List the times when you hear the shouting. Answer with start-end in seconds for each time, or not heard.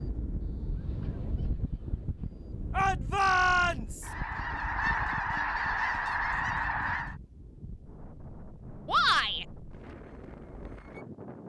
2.7-4.1, 8.8-9.4.